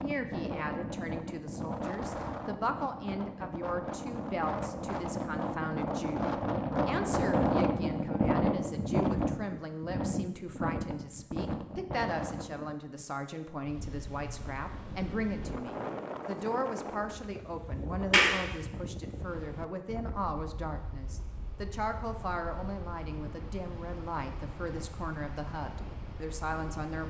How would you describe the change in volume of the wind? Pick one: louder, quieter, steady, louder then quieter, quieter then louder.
louder then quieter.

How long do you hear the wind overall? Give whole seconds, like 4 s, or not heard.
27 s.